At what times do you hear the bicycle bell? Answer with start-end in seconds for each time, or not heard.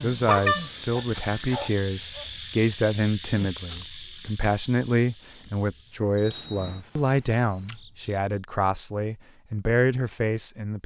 0.2-1.6, 6.2-6.8.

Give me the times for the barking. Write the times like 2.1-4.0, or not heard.
0.9-2.3.